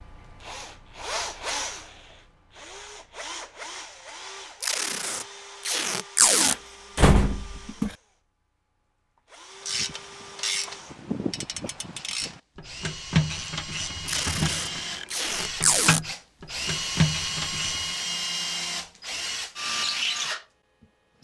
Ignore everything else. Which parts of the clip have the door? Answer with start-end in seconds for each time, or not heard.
6.5-8.0.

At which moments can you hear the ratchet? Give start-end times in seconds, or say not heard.
9.7-17.9.